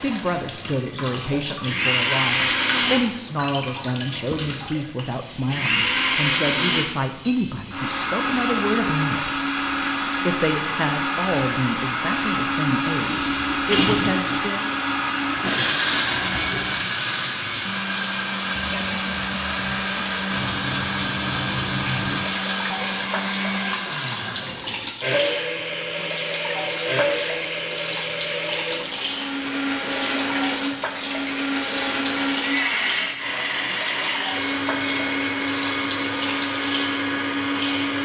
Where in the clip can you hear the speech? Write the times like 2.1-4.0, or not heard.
0.0-9.3, 10.2-14.7.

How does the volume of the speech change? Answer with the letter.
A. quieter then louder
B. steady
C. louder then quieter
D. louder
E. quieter
B.